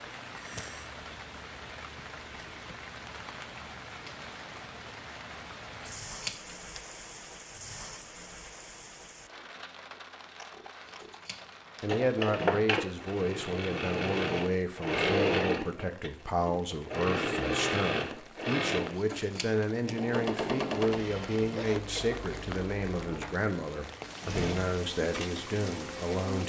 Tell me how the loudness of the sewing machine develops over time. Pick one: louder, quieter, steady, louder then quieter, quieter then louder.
quieter.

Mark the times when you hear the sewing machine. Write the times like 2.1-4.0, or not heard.
11.8-26.4.